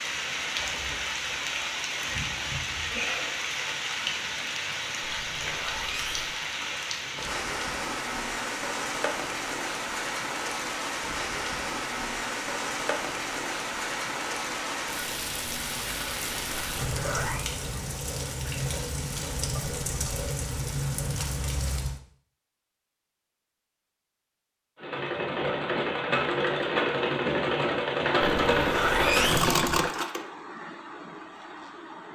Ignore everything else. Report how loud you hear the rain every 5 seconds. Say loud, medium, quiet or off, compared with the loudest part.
loud, loud, loud, loud, loud, off, off.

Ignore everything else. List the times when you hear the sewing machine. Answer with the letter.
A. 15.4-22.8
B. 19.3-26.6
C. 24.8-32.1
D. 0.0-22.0
C.